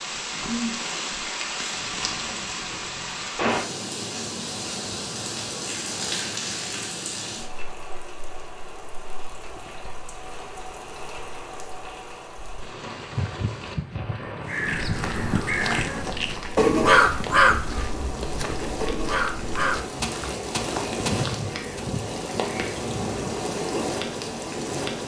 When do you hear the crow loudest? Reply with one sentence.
The volume of the crow peaks at 17 seconds.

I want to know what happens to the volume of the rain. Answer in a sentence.
The loudness of the rain goes down, then up.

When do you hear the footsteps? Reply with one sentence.
The footsteps can be heard from 14.8 to 21.9 s.